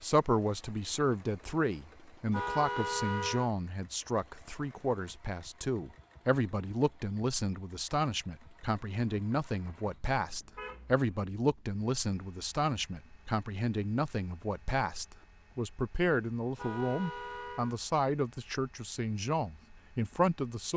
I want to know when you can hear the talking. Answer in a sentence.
You can hear the talking from 0.0 to 20.7 s.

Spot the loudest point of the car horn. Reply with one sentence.
The loudest moment of the car horn is at 3 seconds.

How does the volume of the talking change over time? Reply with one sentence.
The loudness of the talking stays about the same.